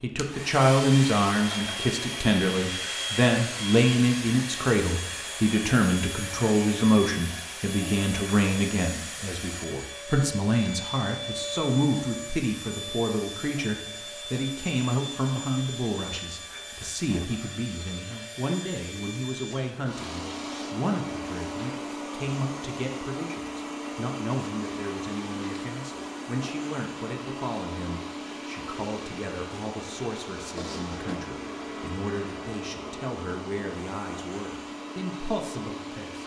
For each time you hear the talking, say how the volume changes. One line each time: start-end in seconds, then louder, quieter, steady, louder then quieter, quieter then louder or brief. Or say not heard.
0.0-36.2 quieter.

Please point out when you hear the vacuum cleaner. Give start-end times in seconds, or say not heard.
0.1-36.2.